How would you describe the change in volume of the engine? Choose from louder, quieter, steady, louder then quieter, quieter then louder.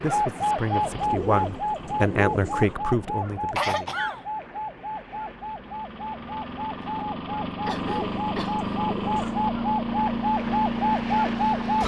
quieter then louder.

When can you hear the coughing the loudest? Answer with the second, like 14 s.
4 s.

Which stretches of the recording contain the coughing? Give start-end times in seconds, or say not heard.
3.5-4.2, 7.6-8.7.